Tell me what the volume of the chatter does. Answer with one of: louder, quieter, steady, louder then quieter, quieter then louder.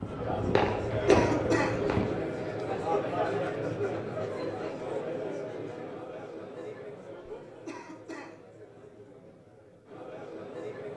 quieter.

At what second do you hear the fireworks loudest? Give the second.
1 s.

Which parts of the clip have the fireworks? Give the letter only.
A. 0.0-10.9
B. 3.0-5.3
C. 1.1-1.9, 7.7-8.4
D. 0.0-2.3
D.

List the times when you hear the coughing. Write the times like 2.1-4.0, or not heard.
1.1-1.9, 7.7-8.4.